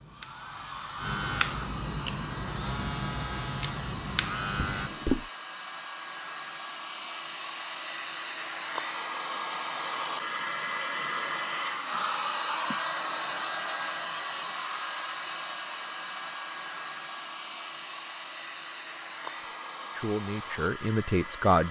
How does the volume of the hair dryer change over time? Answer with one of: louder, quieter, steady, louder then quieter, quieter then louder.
louder then quieter.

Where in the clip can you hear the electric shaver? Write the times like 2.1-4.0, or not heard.
0.0-4.9.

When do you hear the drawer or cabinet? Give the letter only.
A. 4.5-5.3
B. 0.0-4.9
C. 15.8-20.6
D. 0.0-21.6
A.